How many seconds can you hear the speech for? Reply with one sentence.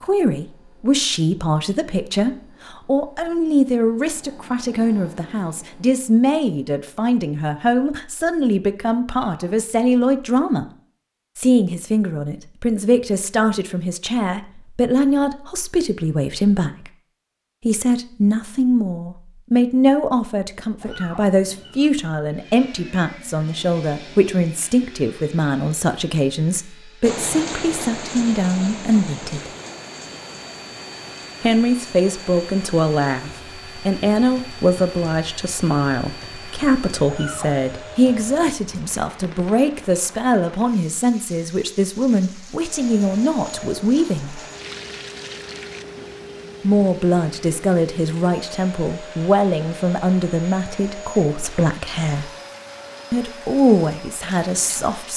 The speech can be heard for 49 seconds in total.